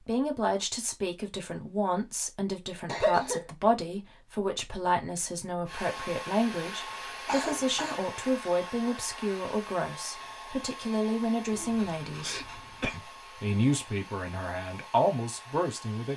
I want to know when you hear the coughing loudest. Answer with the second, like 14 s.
3 s.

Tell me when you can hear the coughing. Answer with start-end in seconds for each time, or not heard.
2.9-3.5, 7.2-8.1, 11.5-13.0.